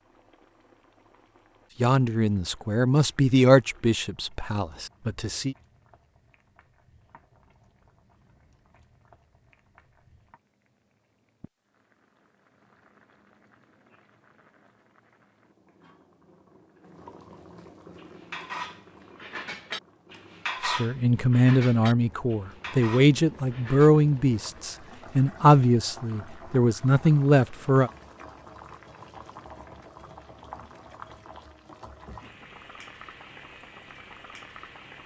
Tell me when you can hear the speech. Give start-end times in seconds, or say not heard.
1.8-5.5, 20.6-27.9.